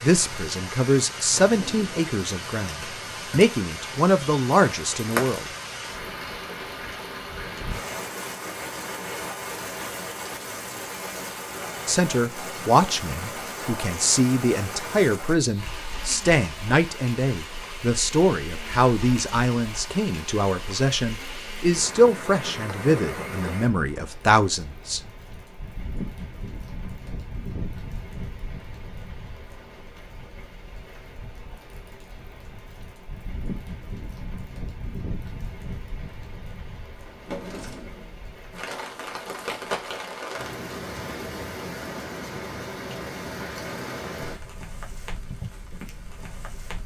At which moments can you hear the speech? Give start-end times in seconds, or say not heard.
0.0-5.5, 11.8-25.0.